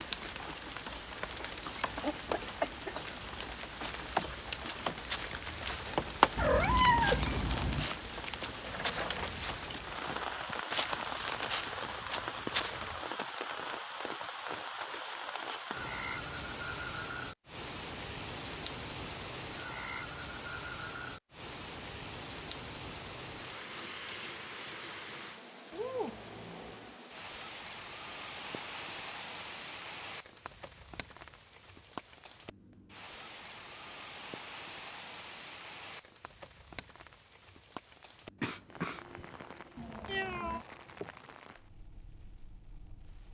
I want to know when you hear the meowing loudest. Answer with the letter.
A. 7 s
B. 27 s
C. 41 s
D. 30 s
A.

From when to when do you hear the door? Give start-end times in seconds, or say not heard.
not heard.